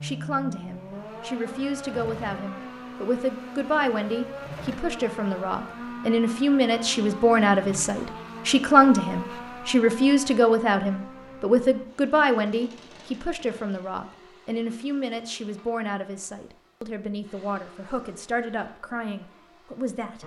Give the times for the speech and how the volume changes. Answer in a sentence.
The speech can be heard from 0.0 to 20.2 s, getting louder then quieter.